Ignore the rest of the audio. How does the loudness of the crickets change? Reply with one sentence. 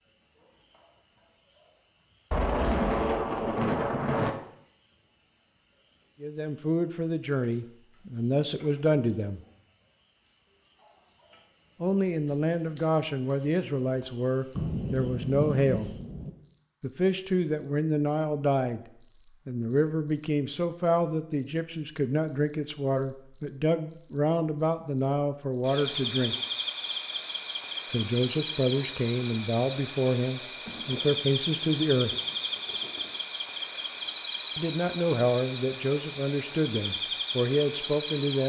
The volume of the crickets goes up.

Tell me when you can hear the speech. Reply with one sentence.
The speech can be heard from 6.2 to 9.4 s, from 11.8 to 15.9 s, from 16.8 to 18.8 s, from 19.4 to 26.4 s, from 27.9 to 32.1 s and from 34.5 to 38.4 s.